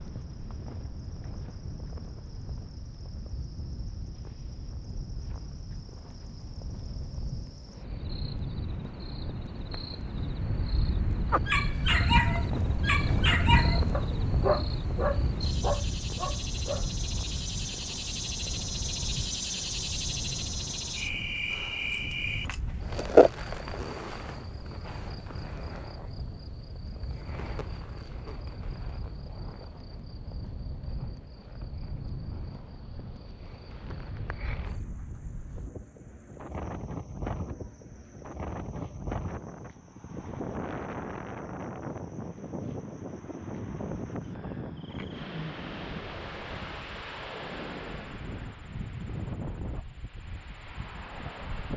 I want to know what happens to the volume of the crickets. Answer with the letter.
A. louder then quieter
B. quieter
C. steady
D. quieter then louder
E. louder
A.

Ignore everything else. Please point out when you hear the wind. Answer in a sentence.
You can hear the wind from 0.0 to 51.7 s.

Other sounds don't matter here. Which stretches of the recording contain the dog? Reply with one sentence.
The dog can be heard from 11.3 to 16.9 s.